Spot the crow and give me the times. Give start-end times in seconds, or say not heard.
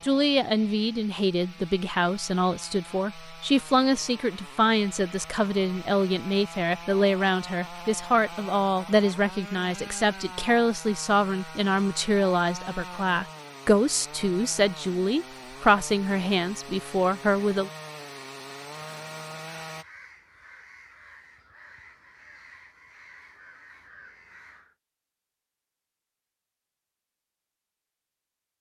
18.7-24.8.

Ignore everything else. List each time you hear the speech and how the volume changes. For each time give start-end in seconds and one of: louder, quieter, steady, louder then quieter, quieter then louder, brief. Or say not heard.
0.0-17.7 steady.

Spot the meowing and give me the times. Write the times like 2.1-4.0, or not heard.
not heard.